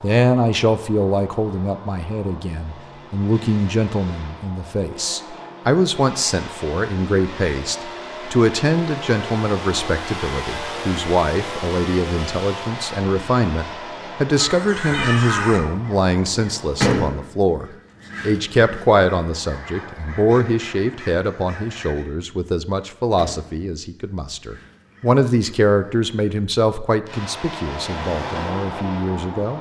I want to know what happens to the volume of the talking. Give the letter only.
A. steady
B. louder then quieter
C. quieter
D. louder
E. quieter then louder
A.